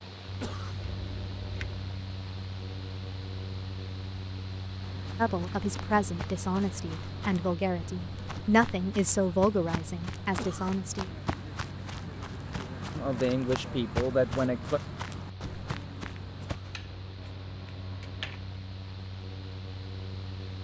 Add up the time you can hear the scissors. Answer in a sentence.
The scissors can be heard for 3 seconds in total.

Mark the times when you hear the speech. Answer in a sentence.
The speech can be heard from 5.2 to 11.1 s and from 12.9 to 14.8 s.